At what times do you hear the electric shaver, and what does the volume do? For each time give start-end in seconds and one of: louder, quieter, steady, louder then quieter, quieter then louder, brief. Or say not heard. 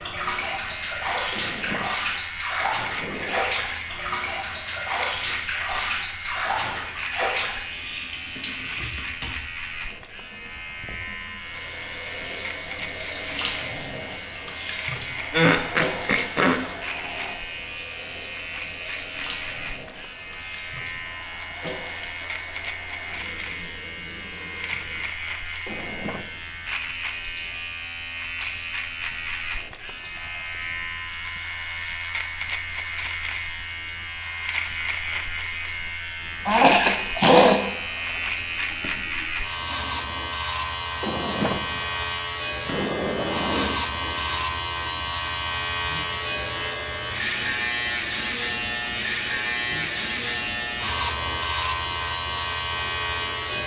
0.0-53.6 louder.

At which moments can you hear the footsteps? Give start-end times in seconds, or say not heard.
not heard.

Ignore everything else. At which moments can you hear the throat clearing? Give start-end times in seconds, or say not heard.
15.3-16.6, 36.5-37.6.